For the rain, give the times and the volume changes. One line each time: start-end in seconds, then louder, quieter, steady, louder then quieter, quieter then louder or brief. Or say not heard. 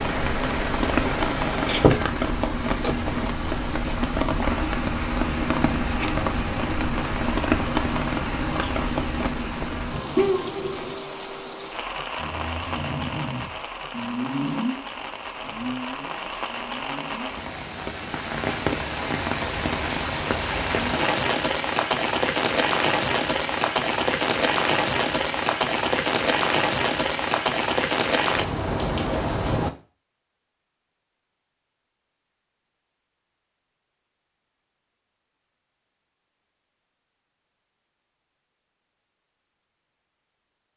0.0-29.7 quieter then louder.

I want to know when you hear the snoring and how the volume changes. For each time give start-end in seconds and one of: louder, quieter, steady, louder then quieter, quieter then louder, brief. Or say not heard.
12.2-17.4 quieter.